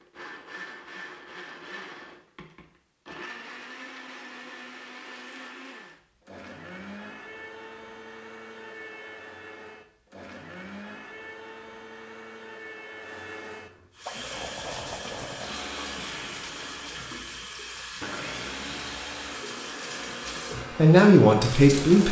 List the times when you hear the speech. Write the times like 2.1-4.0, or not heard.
20.8-22.0.